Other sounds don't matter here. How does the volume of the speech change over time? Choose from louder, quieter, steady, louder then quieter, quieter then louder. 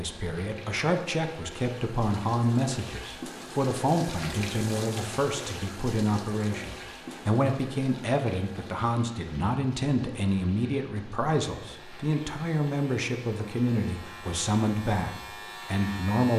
steady.